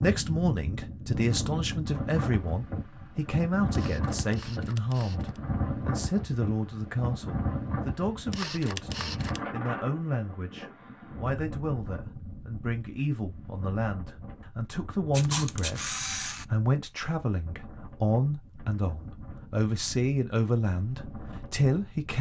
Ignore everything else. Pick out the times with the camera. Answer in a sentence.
You can hear the camera from 3.7 to 5.4 s, from 8.3 to 9.4 s and from 15.1 to 16.4 s.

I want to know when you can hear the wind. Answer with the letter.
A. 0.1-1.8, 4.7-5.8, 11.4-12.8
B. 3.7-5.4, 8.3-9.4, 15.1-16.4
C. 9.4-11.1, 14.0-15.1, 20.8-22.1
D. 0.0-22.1
D.